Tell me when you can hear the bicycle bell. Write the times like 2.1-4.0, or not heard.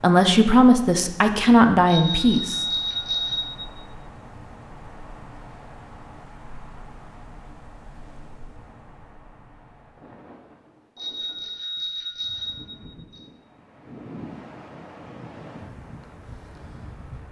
1.9-3.8, 10.9-13.2.